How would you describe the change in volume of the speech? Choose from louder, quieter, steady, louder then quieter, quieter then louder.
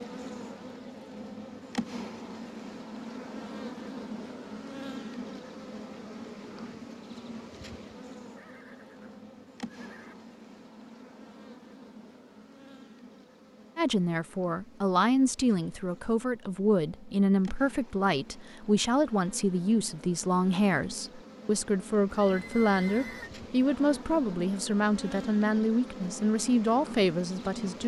steady.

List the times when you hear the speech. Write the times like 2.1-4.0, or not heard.
13.8-27.8.